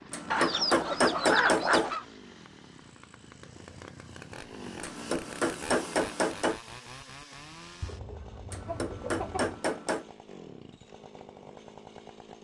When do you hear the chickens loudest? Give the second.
1 s.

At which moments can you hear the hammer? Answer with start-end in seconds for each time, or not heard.
0.1-1.9, 4.8-6.6, 8.5-10.1.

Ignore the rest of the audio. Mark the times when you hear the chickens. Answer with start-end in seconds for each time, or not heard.
0.3-2.0, 7.8-9.6.